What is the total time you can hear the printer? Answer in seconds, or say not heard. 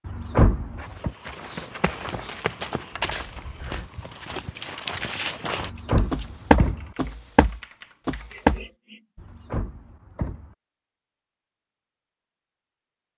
not heard.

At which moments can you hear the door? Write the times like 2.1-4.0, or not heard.
0.1-1.1, 5.6-7.0, 9.2-10.6.